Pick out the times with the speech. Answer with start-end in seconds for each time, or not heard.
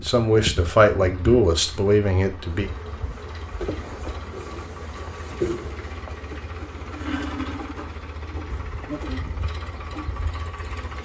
0.0-2.7.